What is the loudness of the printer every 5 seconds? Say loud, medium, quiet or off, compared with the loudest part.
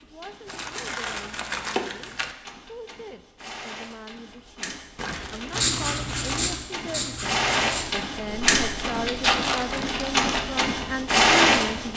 quiet, medium, loud.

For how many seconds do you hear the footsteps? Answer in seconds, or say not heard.
not heard.